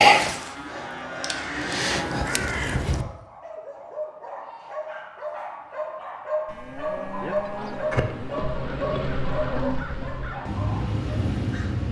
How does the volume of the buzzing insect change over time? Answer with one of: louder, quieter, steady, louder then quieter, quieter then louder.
louder then quieter.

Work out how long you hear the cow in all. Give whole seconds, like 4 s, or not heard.
4 s.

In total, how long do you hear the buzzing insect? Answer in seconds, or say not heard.
5 s.